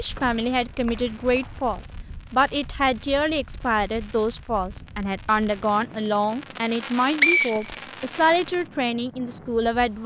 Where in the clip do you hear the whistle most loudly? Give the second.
7 s.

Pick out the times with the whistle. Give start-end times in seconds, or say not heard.
0.1-1.6, 6.7-8.3.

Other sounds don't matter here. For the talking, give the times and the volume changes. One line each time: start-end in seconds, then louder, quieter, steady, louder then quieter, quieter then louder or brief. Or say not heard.
0.0-10.0 steady.